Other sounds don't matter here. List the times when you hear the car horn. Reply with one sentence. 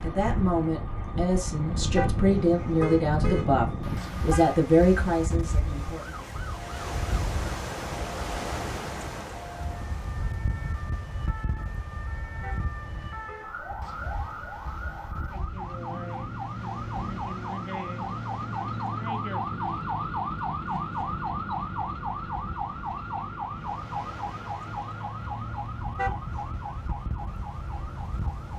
You can hear the car horn from 1.9 to 4.6 s, from 12.4 to 13.5 s and from 25.9 to 26.5 s.